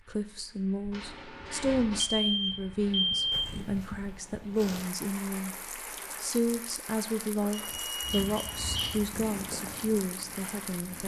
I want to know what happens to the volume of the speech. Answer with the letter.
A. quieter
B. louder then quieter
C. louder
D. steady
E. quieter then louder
D.